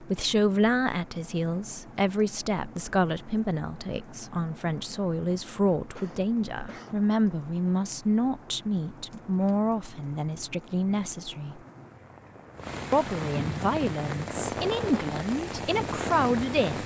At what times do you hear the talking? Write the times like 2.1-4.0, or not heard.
0.0-11.6, 12.9-16.8.